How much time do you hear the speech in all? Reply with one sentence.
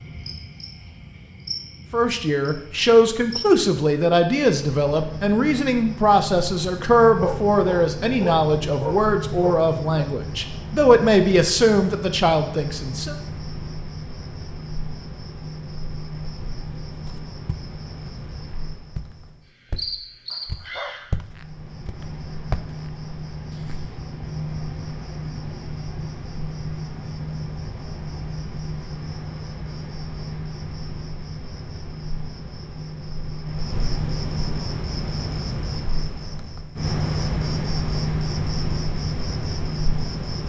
You can hear the speech for 11 seconds altogether.